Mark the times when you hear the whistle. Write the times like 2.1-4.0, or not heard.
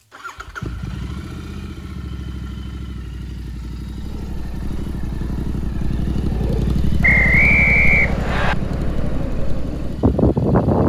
7.0-8.6.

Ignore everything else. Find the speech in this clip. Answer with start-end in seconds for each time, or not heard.
not heard.